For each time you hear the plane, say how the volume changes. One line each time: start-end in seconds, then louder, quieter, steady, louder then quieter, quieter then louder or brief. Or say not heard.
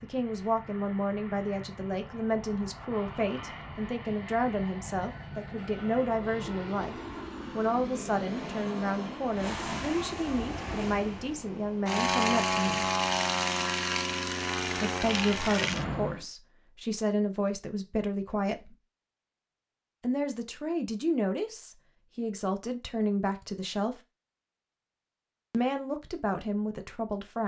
0.0-16.2 louder.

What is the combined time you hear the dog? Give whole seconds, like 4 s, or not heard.
not heard.